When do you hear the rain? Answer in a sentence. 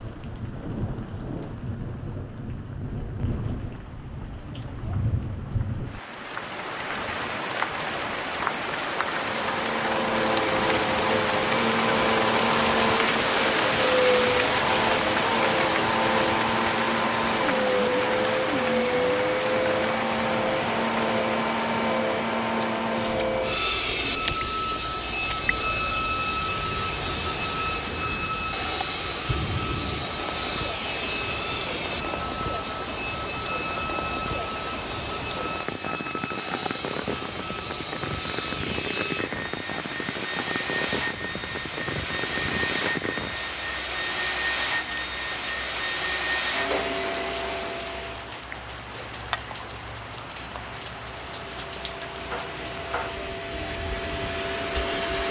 You can hear the rain from 0.0 to 55.2 s.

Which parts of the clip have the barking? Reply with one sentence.
You can't hear the barking here.